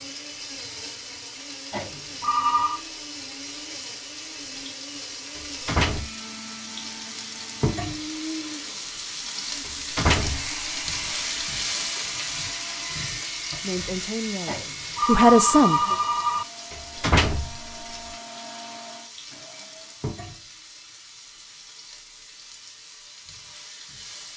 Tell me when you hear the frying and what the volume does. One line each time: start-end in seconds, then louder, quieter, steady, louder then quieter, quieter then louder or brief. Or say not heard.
0.0-24.3 louder then quieter.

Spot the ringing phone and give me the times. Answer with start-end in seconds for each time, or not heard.
1.7-2.8, 14.4-16.4.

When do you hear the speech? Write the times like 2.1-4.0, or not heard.
13.6-15.9.